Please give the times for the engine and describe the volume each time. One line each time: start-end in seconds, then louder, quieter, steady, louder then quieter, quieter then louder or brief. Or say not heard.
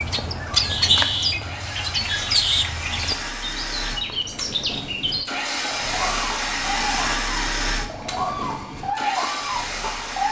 0.2-10.2 louder then quieter.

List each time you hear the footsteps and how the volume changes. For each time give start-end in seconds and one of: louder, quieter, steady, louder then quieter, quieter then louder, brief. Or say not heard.
not heard.